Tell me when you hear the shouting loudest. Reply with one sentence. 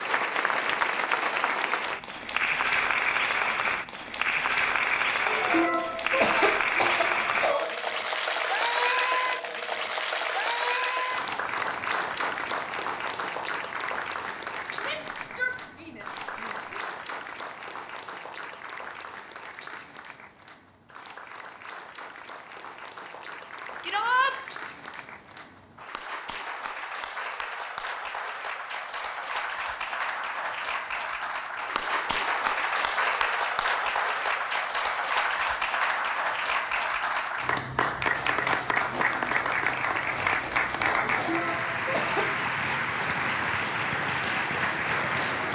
The loudest moment of the shouting is at 24 seconds.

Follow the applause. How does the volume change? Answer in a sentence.
The loudness of the applause goes down, then up.